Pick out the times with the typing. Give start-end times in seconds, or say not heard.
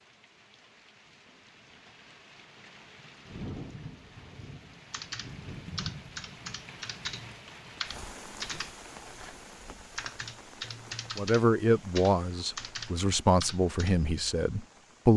4.9-9.3, 9.9-13.9.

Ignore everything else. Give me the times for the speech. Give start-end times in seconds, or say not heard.
11.2-15.1.